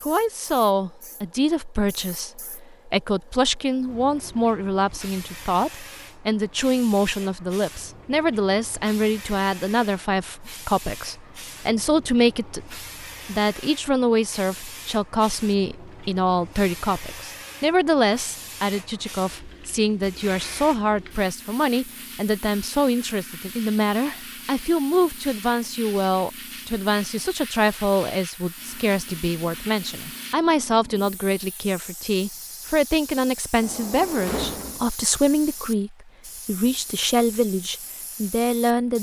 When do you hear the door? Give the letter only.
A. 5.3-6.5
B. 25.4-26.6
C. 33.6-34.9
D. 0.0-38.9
C.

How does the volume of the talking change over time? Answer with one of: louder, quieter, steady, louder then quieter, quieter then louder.
steady.